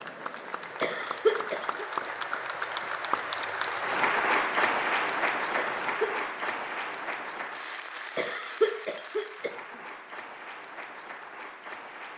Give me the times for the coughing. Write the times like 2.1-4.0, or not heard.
0.8-1.9, 5.5-6.2, 8.2-9.6.